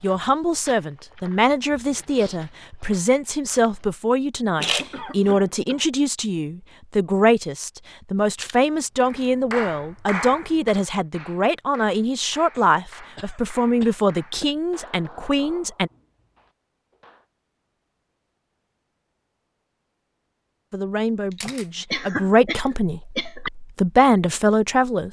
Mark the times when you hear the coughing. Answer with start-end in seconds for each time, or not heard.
4.5-5.8, 12.5-14.6, 21.4-23.5.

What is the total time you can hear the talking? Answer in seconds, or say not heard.
20 s.